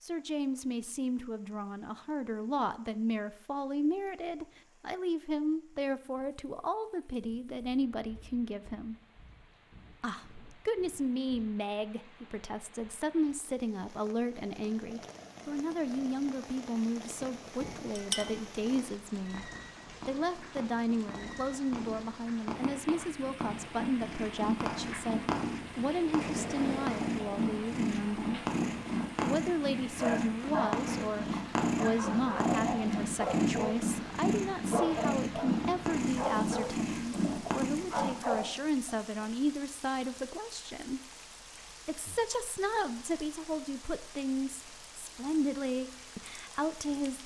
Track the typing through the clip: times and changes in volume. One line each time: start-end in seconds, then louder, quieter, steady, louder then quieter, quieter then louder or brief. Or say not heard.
not heard.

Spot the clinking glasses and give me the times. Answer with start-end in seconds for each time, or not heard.
17.6-18.4.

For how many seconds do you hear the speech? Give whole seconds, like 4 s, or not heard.
44 s.